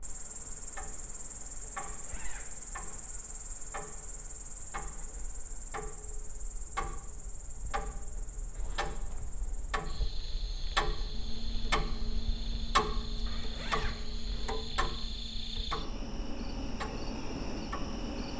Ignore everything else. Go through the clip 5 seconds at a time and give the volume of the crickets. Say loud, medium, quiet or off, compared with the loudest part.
loud, medium, medium, loud.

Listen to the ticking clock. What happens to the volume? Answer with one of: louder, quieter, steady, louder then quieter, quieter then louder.
louder then quieter.